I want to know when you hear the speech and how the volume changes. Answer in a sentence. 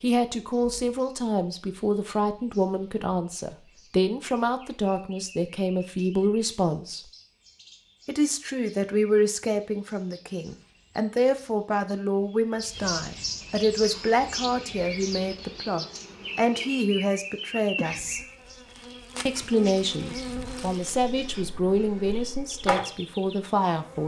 You can hear the speech from 0.0 to 7.0 s, at a steady volume; from 8.1 to 18.2 s, at a steady volume; and from 19.2 to 24.0 s, at a steady volume.